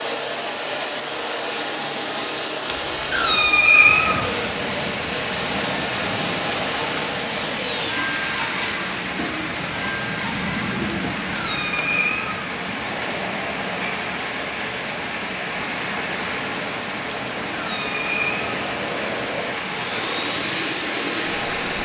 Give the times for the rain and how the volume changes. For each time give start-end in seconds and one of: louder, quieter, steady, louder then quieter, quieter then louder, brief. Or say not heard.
3.8-21.7 steady.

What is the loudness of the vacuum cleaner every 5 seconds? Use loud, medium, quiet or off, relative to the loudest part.
loud, loud, medium, medium, loud.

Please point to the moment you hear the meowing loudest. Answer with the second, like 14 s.
4 s.